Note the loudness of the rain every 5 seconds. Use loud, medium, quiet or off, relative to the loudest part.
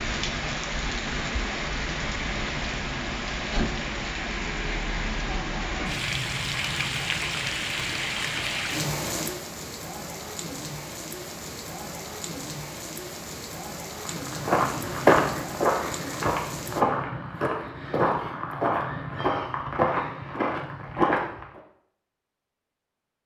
loud, loud, medium, medium, off.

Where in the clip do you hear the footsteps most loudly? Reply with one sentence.
The loudest moment of the footsteps is at 15 seconds.